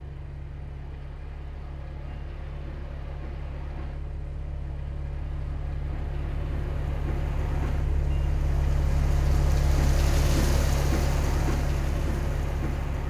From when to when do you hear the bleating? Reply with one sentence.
The bleating can't be heard in this clip.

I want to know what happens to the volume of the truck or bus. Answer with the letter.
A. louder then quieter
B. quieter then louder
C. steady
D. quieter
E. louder
E.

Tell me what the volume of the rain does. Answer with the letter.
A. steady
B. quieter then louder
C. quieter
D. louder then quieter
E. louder
E.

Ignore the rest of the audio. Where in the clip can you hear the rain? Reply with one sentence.
The rain can be heard from 0.0 to 13.0 s.